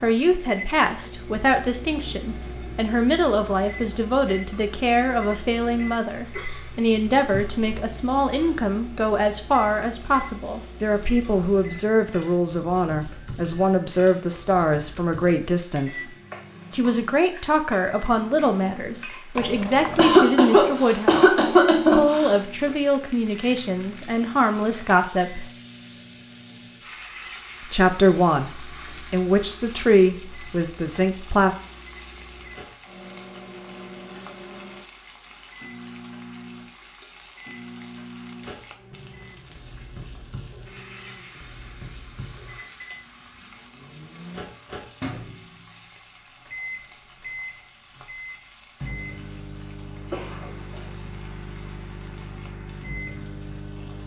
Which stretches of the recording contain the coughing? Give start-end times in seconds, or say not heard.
6.0-7.8, 19.9-22.4, 50.1-50.9.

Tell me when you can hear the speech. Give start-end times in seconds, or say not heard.
0.0-16.1, 16.7-25.4, 27.6-31.6.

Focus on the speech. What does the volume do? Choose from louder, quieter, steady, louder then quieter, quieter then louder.
steady.